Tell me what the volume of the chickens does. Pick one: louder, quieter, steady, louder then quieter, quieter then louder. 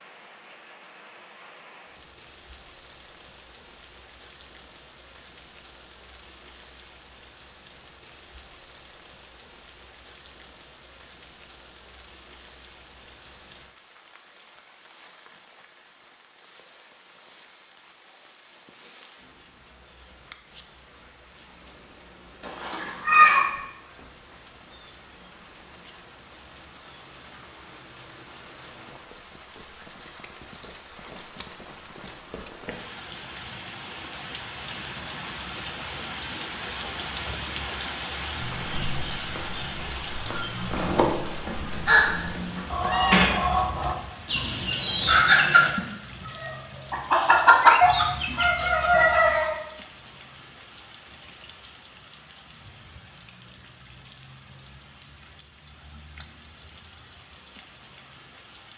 louder.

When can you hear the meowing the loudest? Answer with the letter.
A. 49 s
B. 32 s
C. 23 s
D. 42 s
C.